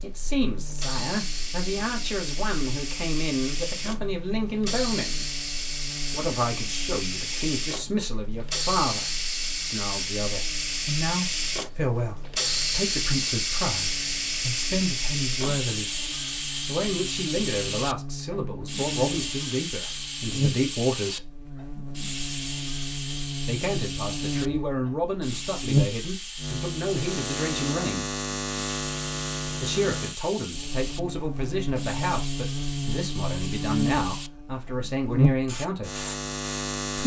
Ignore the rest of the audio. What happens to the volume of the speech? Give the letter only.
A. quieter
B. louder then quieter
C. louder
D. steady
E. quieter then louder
D.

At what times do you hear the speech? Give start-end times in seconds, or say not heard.
0.0-5.2, 6.1-15.9, 16.6-21.4, 23.4-28.1, 29.6-36.0.